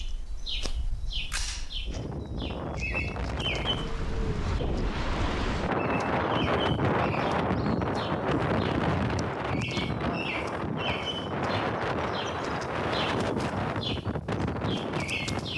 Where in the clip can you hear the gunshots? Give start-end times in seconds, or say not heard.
1.3-1.8.